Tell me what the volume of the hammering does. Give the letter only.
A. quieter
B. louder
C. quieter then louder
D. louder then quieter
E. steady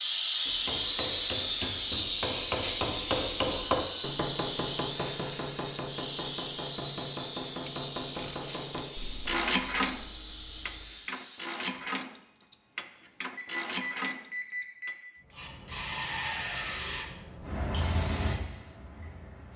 D.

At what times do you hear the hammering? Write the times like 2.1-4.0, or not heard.
0.5-8.9.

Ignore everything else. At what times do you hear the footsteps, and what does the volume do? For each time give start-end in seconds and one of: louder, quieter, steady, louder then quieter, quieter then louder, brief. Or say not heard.
not heard.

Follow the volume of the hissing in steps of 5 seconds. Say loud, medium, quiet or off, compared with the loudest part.
loud, medium, quiet, medium.